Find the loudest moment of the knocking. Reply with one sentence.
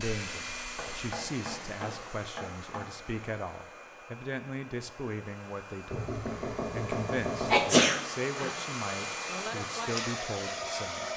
The volume of the knocking peaks at 7 seconds.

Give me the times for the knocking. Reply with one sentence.
The knocking can be heard from 0.8 to 2.9 s and from 5.9 to 7.6 s.